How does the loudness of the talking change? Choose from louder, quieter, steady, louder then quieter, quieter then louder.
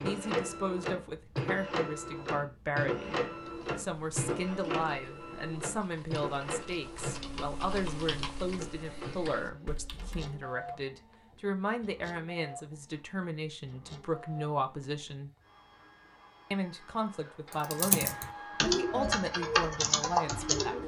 steady.